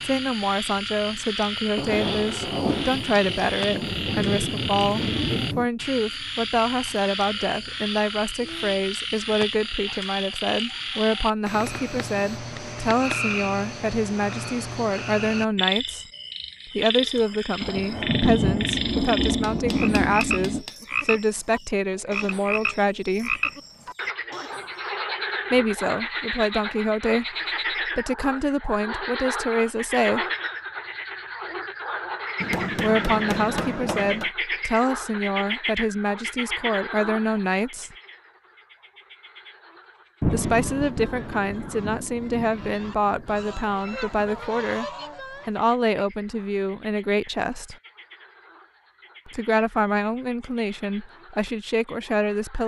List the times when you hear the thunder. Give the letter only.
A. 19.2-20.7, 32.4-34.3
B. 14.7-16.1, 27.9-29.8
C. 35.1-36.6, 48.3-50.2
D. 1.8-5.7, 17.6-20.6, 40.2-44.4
D.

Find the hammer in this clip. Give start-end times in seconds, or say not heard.
19.2-20.7, 32.4-34.3.